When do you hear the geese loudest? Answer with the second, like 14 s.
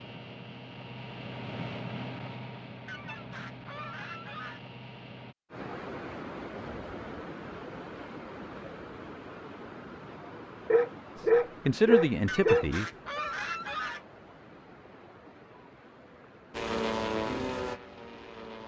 13 s.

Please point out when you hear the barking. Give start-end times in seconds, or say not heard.
10.7-12.7.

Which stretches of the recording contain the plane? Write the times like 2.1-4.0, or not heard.
0.0-5.3, 16.5-18.6.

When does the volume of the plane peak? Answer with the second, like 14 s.
17 s.